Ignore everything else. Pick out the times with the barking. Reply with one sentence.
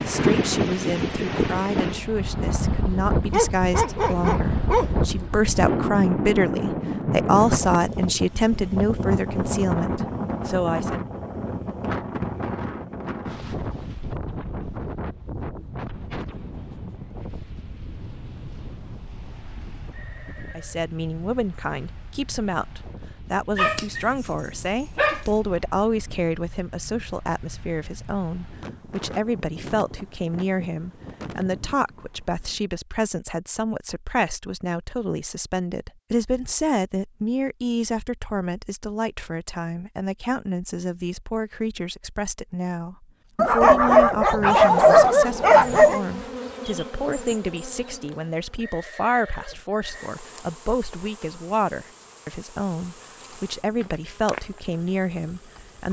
The barking can be heard from 3.3 to 5.3 s, from 23.6 to 25.3 s and from 43.4 to 46.0 s.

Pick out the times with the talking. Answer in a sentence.
You can hear the talking from 0.0 to 11.0 s and from 20.6 to 55.8 s.